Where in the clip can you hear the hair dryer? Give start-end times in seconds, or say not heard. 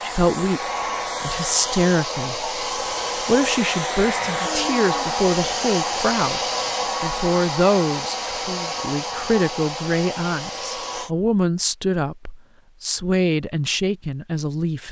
0.0-11.1.